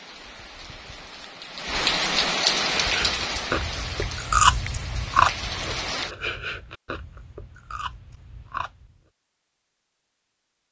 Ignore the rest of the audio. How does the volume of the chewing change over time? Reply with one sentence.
The loudness of the chewing goes up, then down.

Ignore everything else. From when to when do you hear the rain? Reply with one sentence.
The rain can be heard from 0.0 to 6.2 s.